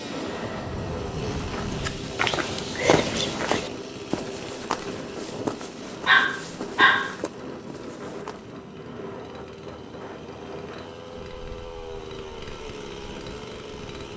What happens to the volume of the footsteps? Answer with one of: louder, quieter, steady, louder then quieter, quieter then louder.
quieter.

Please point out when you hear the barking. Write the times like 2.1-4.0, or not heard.
6.0-7.2.